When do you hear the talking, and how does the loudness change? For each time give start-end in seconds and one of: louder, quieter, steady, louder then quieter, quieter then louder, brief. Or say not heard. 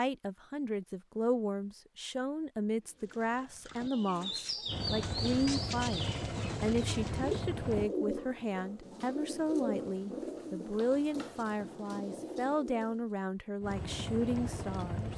0.0-15.1 steady.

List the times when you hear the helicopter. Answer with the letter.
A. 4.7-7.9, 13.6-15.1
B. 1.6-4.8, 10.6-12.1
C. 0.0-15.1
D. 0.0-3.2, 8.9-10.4
A.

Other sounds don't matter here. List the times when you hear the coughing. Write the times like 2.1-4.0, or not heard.
not heard.